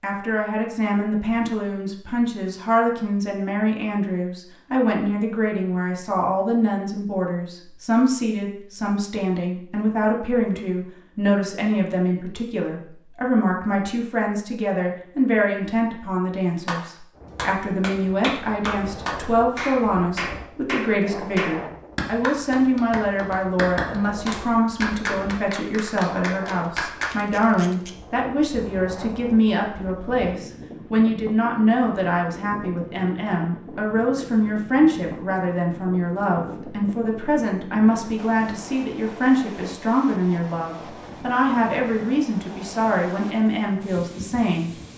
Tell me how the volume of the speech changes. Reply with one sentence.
The loudness of the speech stays about the same.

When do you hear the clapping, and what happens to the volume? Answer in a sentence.
The clapping can be heard from 16.6 to 27.1 s, at a steady volume.